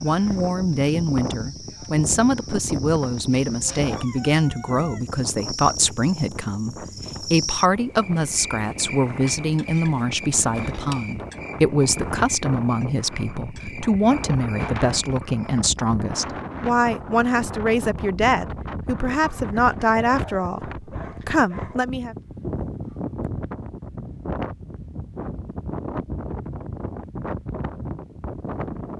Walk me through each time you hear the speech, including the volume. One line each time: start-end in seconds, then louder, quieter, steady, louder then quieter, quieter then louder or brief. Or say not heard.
0.0-22.1 steady.